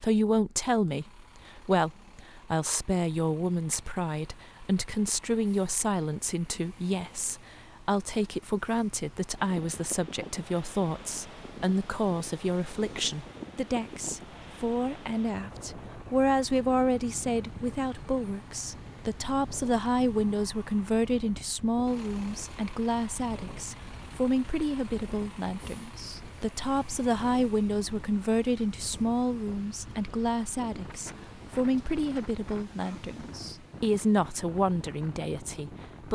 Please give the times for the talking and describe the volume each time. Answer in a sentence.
You can hear the talking from 0.0 to 36.1 s, at a steady volume.